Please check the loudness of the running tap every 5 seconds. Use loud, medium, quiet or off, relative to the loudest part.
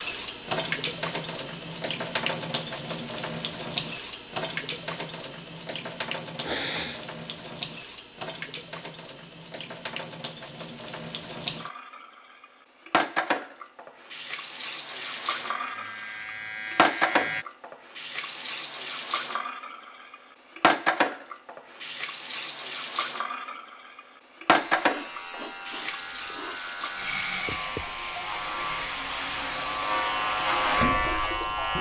loud, medium, medium, loud, loud, loud, loud.